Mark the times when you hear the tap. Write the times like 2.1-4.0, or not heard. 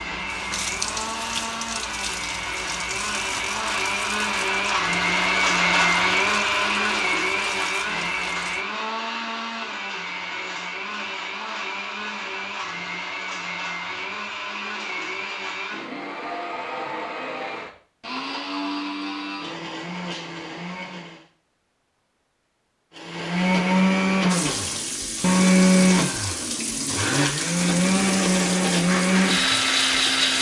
0.0-8.7, 24.2-30.3.